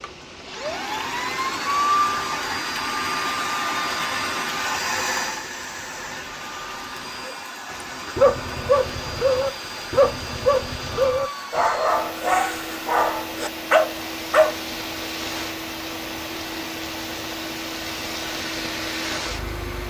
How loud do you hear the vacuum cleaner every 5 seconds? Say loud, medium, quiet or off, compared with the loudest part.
loud, medium, medium, medium.